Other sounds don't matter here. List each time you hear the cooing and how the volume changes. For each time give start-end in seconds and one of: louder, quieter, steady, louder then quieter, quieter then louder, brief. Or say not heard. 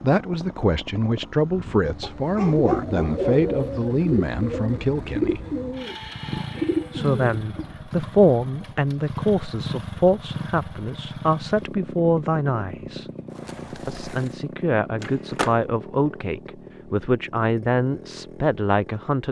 2.6-7.8 quieter then louder.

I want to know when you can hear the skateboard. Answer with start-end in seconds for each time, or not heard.
13.3-15.6.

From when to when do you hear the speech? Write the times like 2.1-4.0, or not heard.
0.0-5.4, 6.9-13.1, 13.8-19.2.